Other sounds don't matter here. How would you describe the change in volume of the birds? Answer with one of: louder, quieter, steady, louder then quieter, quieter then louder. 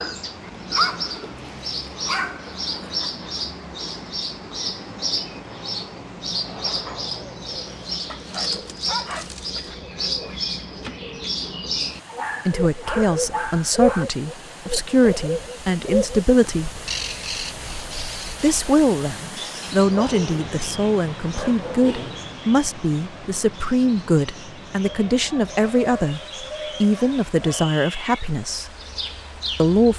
quieter.